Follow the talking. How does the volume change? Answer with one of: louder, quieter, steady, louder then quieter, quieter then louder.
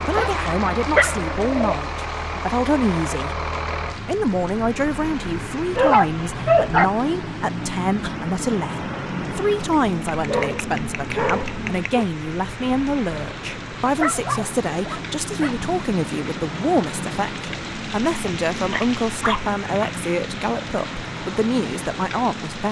steady.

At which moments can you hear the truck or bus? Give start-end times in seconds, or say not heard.
0.0-22.6.